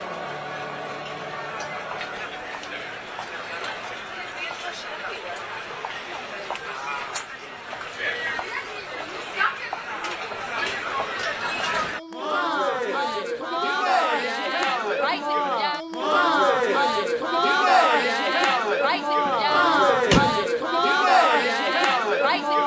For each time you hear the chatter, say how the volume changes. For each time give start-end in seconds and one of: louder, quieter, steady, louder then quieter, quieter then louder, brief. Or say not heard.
0.0-22.6 louder.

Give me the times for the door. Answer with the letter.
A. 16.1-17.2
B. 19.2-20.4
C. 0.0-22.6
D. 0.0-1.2
B.